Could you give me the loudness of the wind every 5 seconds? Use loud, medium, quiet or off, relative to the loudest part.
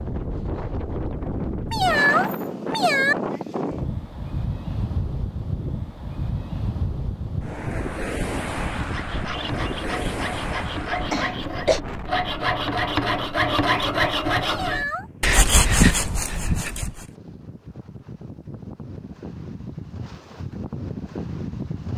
loud, loud, medium, medium, loud.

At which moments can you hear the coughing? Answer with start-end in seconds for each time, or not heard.
11.1-11.8.